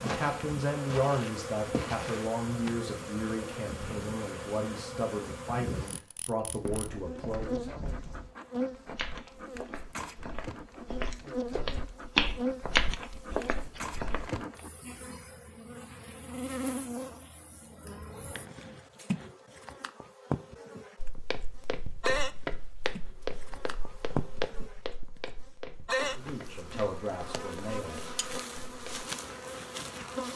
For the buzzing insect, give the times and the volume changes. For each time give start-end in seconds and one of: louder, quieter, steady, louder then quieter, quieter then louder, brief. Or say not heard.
0.0-30.3 steady.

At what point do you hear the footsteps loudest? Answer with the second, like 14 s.
12 s.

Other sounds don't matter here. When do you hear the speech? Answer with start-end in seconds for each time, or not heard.
0.0-7.7, 26.1-28.0.